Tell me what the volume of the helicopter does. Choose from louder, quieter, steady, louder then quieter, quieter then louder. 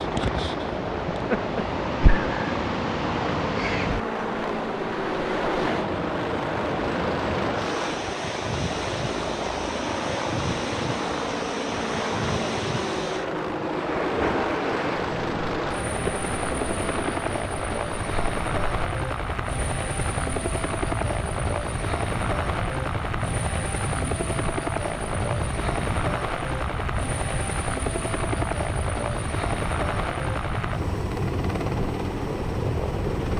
steady.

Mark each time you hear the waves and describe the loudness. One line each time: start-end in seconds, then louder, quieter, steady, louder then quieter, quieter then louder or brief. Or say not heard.
0.0-33.3 steady.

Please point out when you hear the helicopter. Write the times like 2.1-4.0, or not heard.
0.0-33.3.